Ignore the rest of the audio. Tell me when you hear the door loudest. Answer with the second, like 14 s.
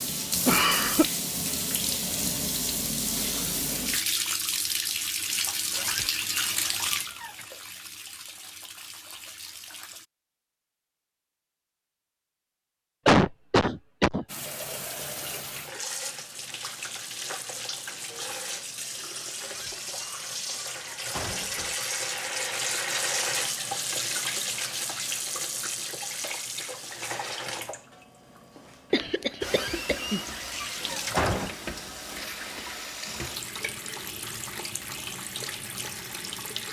31 s.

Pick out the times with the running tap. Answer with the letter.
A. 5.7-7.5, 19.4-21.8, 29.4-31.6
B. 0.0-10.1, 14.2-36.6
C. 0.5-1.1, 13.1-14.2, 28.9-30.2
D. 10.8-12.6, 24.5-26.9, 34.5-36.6
B.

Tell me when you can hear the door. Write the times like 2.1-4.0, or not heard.
5.7-7.5, 19.4-21.8, 29.4-31.6.